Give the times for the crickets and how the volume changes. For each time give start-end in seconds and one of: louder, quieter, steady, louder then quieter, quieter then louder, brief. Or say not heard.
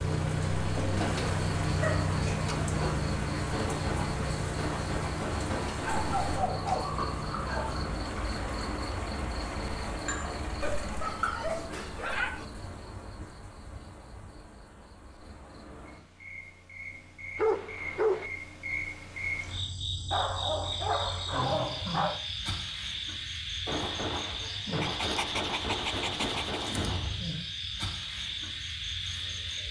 0.0-29.6 quieter then louder.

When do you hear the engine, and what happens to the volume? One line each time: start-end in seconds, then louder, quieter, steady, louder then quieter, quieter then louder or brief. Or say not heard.
0.0-10.9 quieter.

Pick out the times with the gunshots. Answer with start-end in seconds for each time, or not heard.
3.5-6.0, 23.6-27.1.